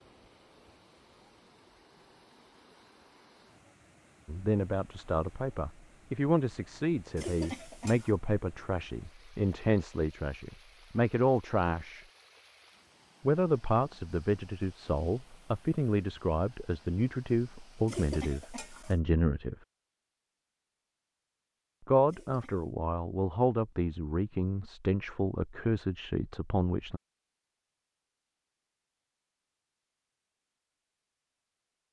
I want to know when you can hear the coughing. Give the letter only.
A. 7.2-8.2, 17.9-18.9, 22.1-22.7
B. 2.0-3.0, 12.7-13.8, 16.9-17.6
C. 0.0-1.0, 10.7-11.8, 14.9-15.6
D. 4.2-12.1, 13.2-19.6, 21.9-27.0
A.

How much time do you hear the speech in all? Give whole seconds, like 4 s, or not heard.
19 s.